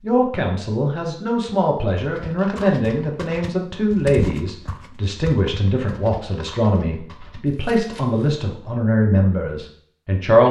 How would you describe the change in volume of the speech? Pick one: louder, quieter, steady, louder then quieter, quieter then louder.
steady.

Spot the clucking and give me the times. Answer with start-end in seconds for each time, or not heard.
not heard.